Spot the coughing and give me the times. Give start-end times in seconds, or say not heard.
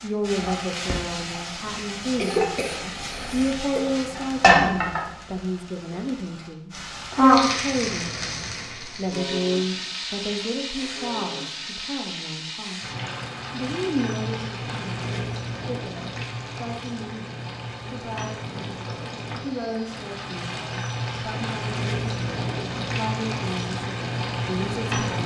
2.1-3.8.